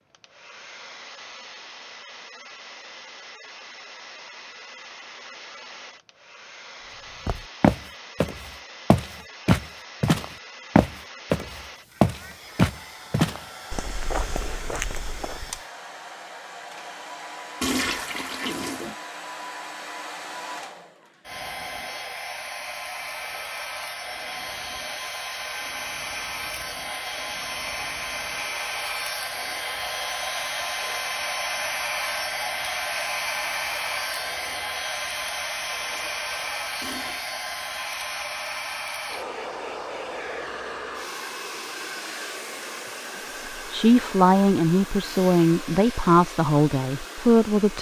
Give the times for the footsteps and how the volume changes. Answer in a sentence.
The footsteps can be heard from 7.2 to 15.6 s, getting quieter.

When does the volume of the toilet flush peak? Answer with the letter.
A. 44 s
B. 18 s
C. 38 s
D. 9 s
B.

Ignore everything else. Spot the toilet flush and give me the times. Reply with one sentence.
You can hear the toilet flush from 17.6 to 18.9 s and from 36.8 to 37.4 s.